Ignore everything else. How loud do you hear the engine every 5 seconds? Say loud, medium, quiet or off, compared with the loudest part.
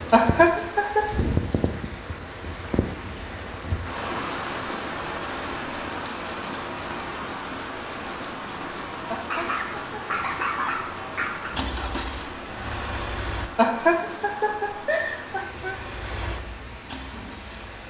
off, off, loud, medium.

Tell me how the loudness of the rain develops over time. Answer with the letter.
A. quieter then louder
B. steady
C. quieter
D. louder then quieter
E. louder
C.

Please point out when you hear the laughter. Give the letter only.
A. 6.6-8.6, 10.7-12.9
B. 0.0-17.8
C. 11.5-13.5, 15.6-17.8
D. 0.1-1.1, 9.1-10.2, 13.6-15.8
D.